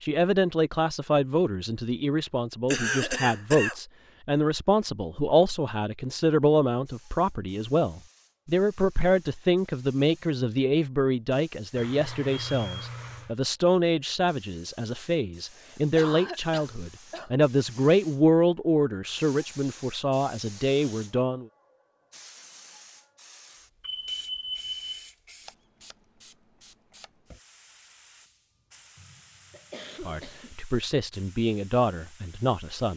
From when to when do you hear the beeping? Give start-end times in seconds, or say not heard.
11.8-13.3, 23.8-25.1.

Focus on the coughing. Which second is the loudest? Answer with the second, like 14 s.
3 s.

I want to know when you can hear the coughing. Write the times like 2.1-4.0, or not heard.
2.7-3.8, 15.6-17.3, 28.9-30.6.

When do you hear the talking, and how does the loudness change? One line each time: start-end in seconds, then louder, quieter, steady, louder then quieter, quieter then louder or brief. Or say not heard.
0.0-21.4 steady
30.0-32.9 brief.